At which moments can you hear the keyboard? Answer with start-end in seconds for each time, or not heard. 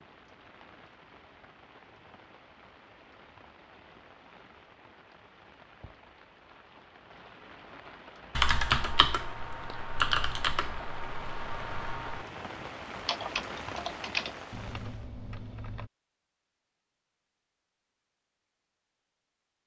8.3-15.9.